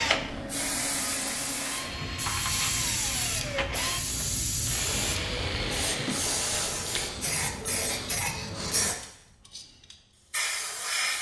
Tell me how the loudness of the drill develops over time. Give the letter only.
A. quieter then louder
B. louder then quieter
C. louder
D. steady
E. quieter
C.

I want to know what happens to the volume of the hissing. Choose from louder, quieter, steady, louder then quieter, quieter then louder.
steady.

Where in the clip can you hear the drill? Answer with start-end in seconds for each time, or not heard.
0.0-6.2.